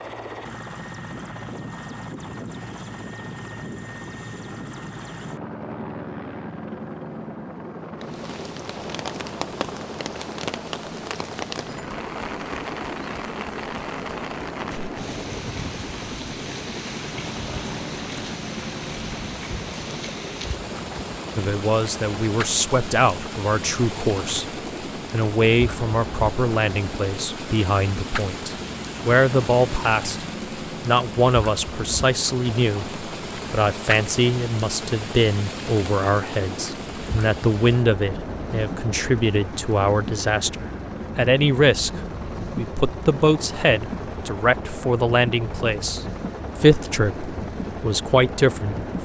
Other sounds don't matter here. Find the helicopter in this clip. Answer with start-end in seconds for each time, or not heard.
0.0-48.9.